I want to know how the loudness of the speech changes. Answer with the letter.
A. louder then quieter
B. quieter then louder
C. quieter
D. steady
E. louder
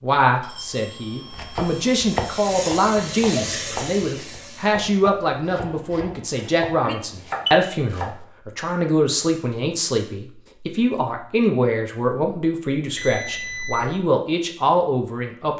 D.